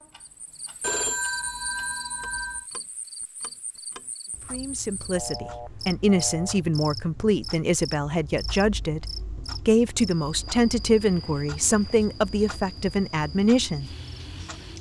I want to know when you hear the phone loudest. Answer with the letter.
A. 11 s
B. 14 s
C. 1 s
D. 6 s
C.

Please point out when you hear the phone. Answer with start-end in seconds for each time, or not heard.
0.8-2.6, 5.2-6.6, 10.4-12.0.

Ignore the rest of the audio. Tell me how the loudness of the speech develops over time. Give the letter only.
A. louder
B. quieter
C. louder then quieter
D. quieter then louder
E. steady
E.